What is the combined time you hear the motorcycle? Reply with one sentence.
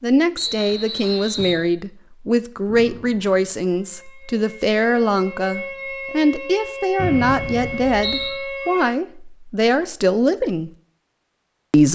You can't hear the motorcycle here.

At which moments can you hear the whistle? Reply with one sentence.
The whistle can be heard from 0.3 to 1.6 s and from 7.0 to 8.4 s.